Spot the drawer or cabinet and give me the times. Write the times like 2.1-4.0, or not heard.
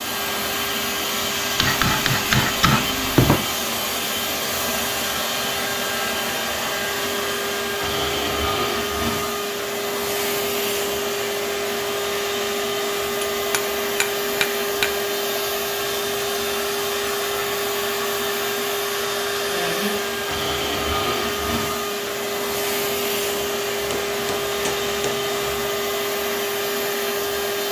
not heard.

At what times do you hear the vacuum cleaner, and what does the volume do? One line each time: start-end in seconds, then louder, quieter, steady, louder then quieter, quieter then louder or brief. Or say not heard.
0.0-27.6 steady.